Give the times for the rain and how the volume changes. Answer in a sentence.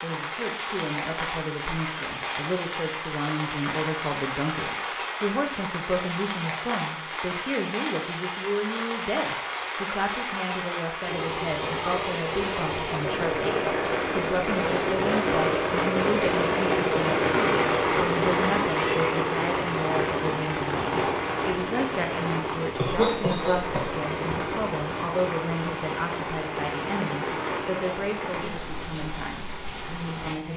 The rain can be heard from 0.0 to 30.5 s, getting louder then quieter.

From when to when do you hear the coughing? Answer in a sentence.
You can hear the coughing from 22.8 to 23.9 s.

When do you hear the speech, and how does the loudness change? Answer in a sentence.
The speech can be heard from 0.0 to 30.5 s, at a steady volume.